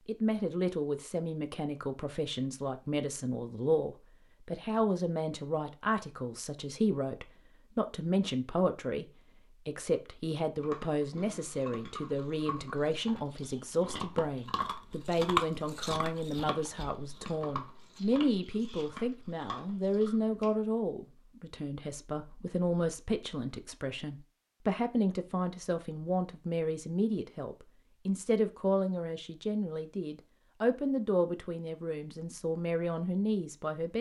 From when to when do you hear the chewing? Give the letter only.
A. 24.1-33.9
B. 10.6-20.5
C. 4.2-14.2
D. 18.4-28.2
B.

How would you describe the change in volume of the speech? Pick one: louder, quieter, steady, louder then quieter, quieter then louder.
steady.